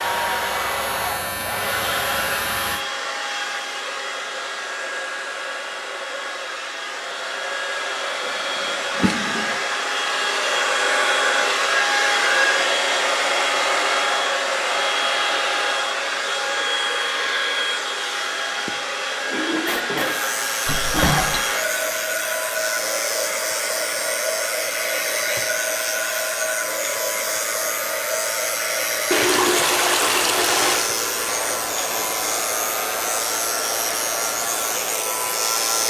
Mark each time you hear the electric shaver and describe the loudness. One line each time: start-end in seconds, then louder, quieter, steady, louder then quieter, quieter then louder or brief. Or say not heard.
0.0-2.9 brief
20.1-35.8 steady.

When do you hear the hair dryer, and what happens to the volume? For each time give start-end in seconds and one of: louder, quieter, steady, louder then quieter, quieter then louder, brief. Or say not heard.
0.0-35.8 louder then quieter.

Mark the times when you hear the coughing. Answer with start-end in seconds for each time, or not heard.
19.6-20.2.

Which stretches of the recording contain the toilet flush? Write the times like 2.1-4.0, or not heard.
8.6-9.6, 20.6-21.4, 29.1-30.9.